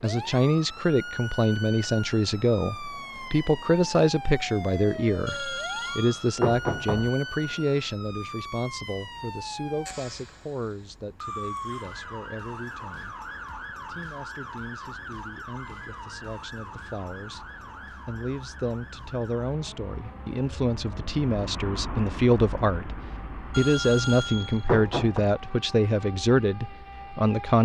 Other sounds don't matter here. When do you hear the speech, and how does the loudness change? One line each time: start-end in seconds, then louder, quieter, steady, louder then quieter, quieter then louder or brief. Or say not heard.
0.0-13.2 quieter
13.8-27.6 louder.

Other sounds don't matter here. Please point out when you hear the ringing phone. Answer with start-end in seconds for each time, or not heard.
5.2-7.1, 23.5-25.2.